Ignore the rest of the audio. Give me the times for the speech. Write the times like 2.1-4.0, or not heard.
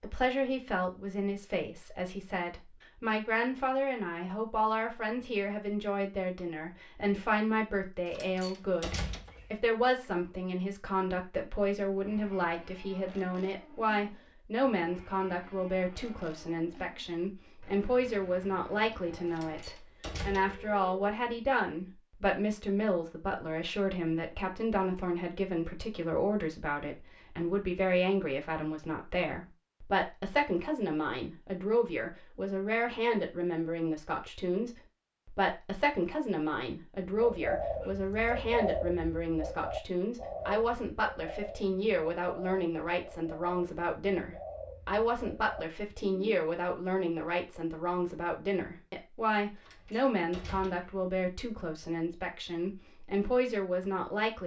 0.0-54.4.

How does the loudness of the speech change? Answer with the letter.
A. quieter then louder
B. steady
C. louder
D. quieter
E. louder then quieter
B.